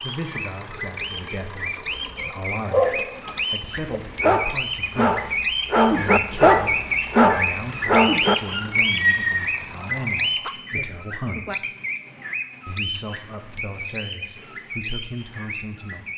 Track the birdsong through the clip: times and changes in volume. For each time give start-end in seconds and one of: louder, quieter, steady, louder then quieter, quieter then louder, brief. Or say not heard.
0.0-16.1 louder then quieter.